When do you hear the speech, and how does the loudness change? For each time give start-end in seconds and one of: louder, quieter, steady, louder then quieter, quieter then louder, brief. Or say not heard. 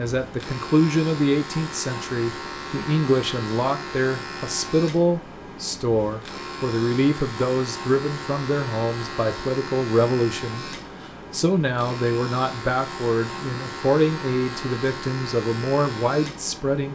0.0-16.9 steady.